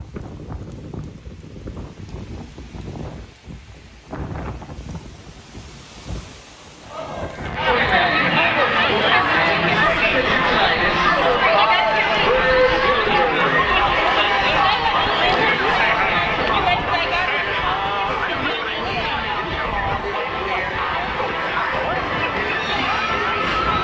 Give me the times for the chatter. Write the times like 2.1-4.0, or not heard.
6.8-23.7.